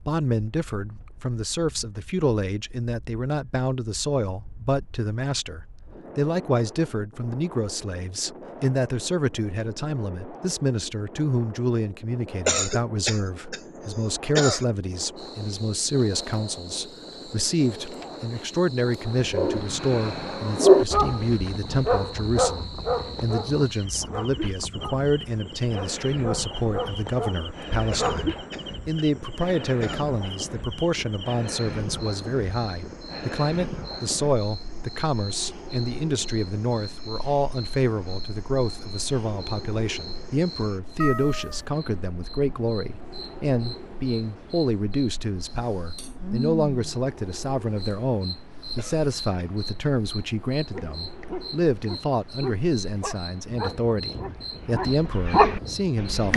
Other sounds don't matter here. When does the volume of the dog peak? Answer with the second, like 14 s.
21 s.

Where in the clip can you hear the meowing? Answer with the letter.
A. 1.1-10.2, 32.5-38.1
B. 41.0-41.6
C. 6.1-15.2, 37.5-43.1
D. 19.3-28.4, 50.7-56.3
B.